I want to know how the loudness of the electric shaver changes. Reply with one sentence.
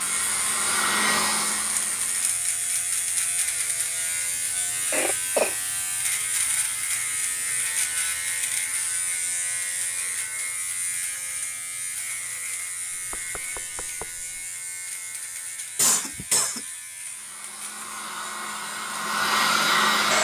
The loudness of the electric shaver goes down.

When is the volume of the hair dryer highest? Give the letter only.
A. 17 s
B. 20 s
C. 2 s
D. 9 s
B.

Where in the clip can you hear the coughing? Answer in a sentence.
The coughing can be heard from 4.9 to 5.5 s and from 15.8 to 16.6 s.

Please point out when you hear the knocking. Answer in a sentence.
The knocking can be heard from 12.9 to 14.5 s.